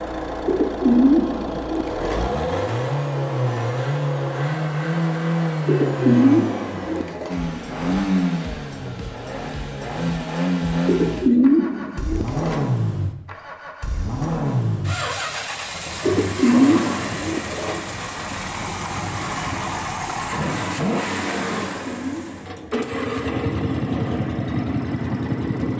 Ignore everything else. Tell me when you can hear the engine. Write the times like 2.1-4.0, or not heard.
0.0-25.7.